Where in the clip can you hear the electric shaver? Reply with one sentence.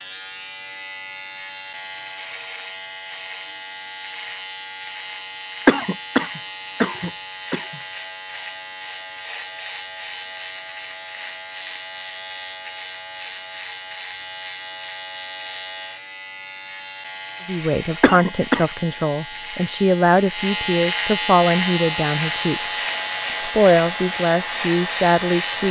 The electric shaver can be heard from 0.0 to 25.6 s.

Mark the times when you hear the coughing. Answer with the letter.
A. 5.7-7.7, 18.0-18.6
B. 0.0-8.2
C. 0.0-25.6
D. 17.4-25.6
A.